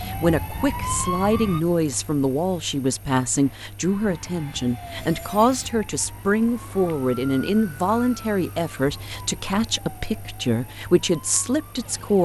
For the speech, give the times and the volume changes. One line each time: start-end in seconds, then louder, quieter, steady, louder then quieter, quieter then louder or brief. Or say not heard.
0.0-12.2 steady.